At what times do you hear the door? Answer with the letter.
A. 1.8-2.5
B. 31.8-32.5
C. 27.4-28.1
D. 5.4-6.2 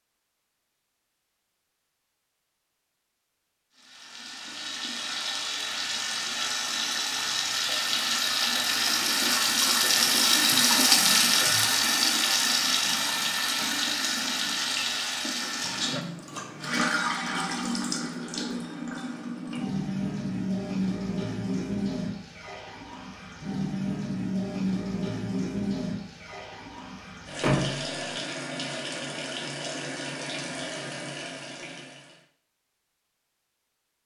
C.